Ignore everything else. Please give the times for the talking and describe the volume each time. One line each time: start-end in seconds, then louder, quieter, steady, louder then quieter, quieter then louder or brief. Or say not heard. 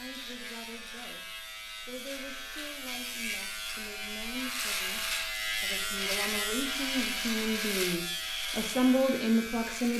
0.0-1.2 brief
1.9-9.9 louder.